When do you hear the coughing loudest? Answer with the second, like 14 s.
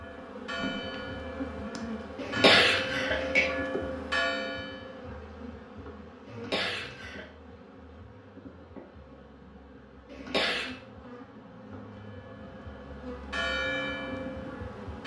3 s.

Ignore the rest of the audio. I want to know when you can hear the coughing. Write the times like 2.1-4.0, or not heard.
2.1-3.5, 6.2-7.2, 10.1-10.7.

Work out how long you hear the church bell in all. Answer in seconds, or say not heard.
8 s.